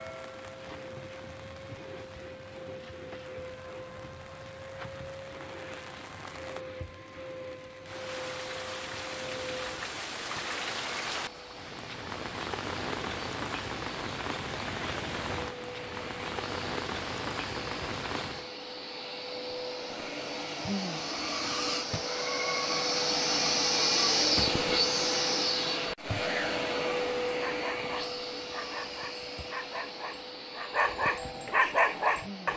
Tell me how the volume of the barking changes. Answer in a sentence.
The loudness of the barking goes up.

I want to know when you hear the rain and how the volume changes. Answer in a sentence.
You can hear the rain from 0.0 to 18.5 s, getting louder.